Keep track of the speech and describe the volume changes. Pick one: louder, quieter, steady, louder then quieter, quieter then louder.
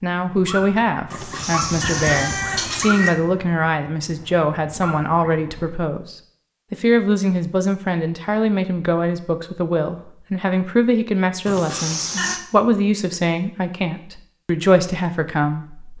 steady.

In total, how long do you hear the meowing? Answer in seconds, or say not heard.
3 s.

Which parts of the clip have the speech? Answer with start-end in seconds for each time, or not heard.
0.0-15.9.